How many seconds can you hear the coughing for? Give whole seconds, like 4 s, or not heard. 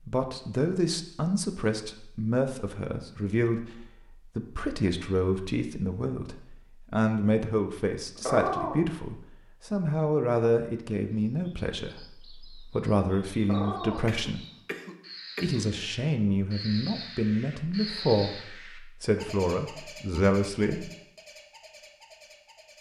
2 s.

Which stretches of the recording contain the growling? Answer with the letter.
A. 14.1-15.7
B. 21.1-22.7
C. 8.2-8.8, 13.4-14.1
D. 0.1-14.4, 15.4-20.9
C.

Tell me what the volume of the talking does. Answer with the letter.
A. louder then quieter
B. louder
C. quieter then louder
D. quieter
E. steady
E.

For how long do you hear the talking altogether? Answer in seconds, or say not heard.
20 s.